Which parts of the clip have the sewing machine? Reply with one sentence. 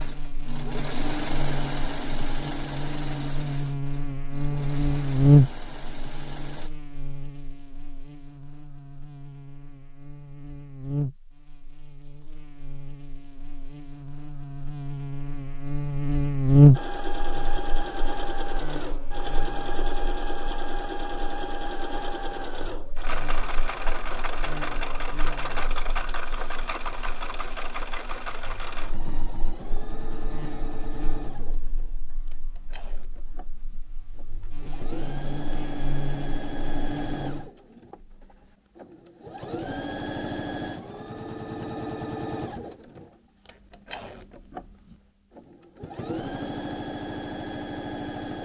You can hear the sewing machine from 0.0 to 6.7 s and from 16.7 to 48.4 s.